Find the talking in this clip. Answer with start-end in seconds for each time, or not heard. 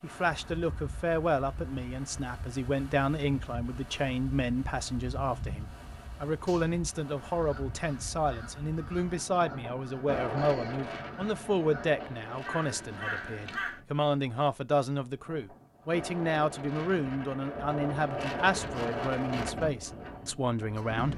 0.0-21.1.